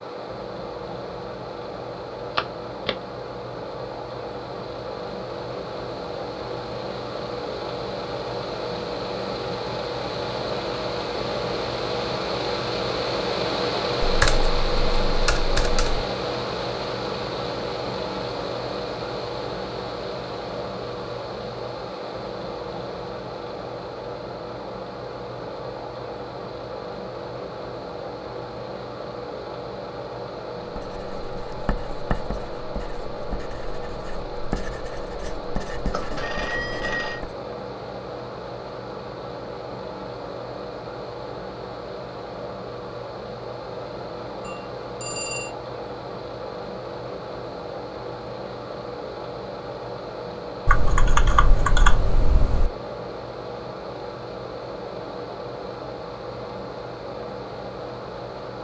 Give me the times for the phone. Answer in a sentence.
You can hear the phone from 2.4 to 3.0 s, from 35.9 to 37.2 s and from 44.4 to 45.5 s.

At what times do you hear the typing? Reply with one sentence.
The typing can be heard from 14.0 to 16.1 s and from 50.6 to 52.7 s.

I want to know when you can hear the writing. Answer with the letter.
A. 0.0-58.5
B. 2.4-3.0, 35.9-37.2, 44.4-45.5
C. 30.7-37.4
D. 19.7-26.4
C.